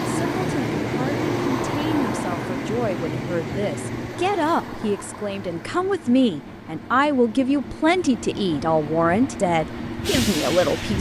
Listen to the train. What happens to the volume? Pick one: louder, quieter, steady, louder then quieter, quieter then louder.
quieter then louder.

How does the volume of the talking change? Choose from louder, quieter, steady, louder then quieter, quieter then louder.
louder.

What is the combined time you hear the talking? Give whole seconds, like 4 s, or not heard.
11 s.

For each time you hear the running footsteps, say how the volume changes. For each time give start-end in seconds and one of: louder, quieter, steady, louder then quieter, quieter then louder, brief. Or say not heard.
not heard.